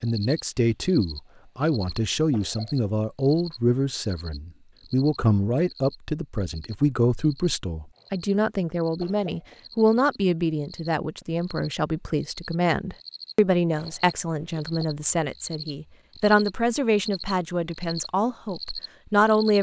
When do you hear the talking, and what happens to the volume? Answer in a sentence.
The talking can be heard from 0.0 to 19.5 s, at a steady volume.